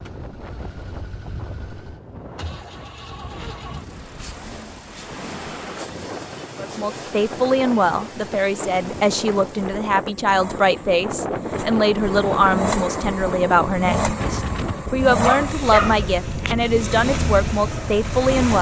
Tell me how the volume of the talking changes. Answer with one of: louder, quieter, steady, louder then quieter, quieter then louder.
steady.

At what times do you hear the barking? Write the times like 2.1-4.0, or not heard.
15.2-16.6.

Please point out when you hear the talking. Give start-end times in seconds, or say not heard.
6.5-18.5.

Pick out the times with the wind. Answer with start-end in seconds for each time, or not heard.
0.0-18.5.